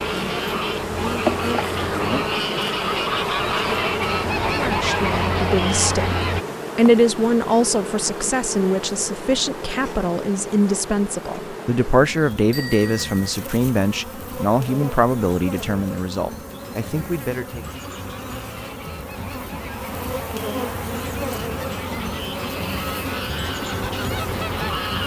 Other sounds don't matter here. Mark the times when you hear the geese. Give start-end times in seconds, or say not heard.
0.0-6.5, 17.6-25.0.